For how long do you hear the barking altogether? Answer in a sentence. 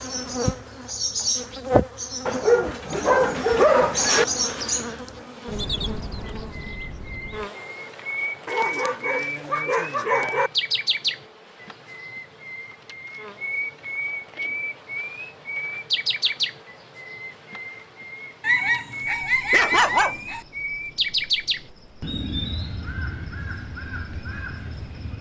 You can hear the barking for 6 seconds altogether.